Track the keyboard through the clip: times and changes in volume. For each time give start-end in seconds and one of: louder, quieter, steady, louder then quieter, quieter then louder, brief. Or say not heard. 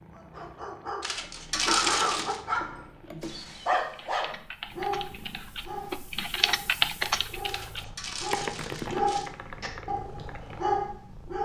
1.1-10.6 louder then quieter.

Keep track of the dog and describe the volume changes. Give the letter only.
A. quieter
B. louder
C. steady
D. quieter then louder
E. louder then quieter
D.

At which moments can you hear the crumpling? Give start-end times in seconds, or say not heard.
1.0-2.4, 7.5-9.3.